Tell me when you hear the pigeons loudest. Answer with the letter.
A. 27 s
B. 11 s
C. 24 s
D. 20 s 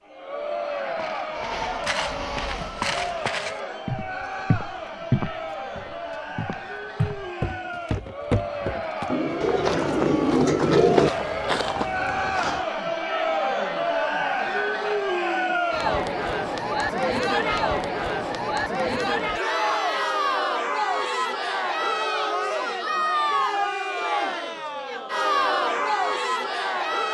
B.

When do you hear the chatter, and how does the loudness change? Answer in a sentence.
The chatter can be heard from 0.1 to 27.0 s, getting louder.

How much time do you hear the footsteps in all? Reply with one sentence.
The footsteps can be heard for 12 seconds in total.